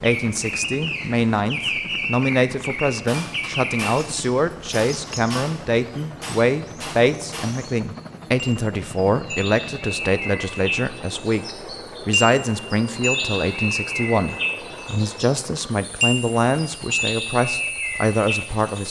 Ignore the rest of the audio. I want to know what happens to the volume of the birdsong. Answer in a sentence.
The volume of the birdsong goes down, then up.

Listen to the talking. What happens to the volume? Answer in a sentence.
The volume of the talking stays about the same.